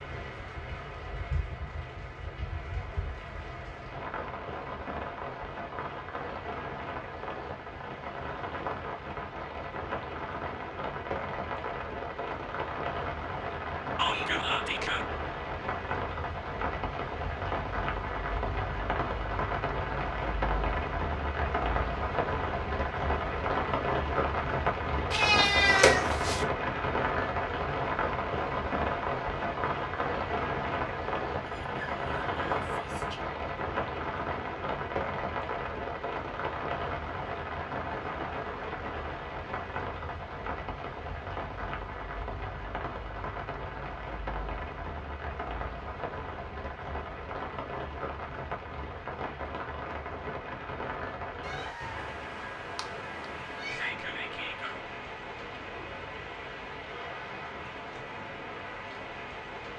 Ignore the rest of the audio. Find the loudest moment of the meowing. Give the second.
26 s.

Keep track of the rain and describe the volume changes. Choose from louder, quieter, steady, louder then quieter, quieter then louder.
louder then quieter.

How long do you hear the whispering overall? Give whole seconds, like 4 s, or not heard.
4 s.